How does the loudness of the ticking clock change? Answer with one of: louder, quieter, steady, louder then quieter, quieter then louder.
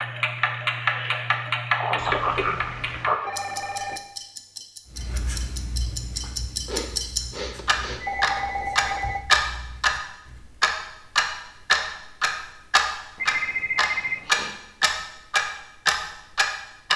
quieter then louder.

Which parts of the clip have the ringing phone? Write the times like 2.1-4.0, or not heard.
1.9-4.0, 7.5-9.2, 13.2-14.3.